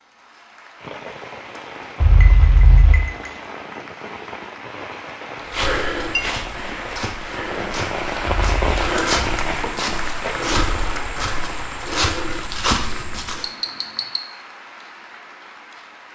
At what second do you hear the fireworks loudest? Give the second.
9 s.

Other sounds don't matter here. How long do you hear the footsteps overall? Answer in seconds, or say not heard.
8 s.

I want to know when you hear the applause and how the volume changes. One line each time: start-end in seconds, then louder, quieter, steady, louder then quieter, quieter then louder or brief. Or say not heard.
0.0-16.1 louder then quieter.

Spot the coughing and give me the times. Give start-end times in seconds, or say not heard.
2.0-3.0, 8.2-8.7.